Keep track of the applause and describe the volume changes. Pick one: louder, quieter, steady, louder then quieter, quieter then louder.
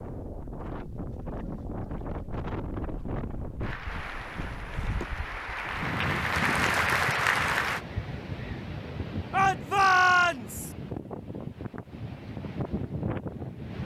louder.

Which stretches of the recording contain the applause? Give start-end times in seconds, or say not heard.
3.6-7.8.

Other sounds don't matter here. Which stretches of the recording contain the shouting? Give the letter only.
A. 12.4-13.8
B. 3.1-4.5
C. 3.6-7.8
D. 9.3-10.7
D.